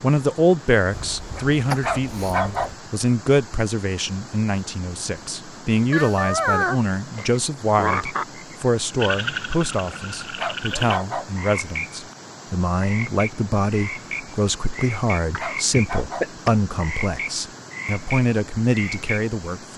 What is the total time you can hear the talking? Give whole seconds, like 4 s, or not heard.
20 s.